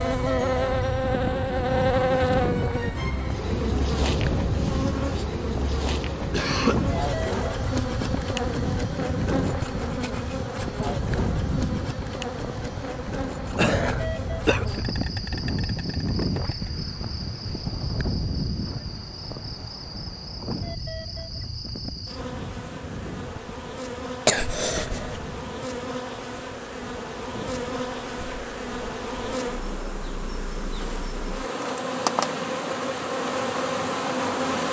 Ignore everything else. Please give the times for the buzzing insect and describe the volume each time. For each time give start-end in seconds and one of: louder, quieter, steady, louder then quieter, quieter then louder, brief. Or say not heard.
0.0-34.6 quieter then louder.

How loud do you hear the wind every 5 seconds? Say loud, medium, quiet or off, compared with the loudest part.
loud, loud, loud, loud, medium, quiet, medium.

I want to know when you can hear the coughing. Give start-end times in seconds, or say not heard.
6.3-6.8, 13.6-14.8, 24.2-25.2.